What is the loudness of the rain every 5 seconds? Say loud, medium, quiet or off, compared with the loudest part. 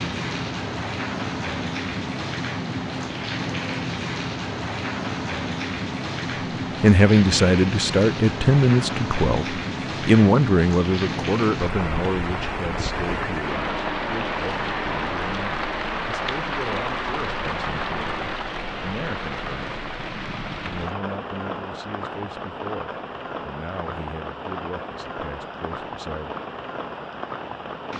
loud, loud, loud, loud, medium, medium.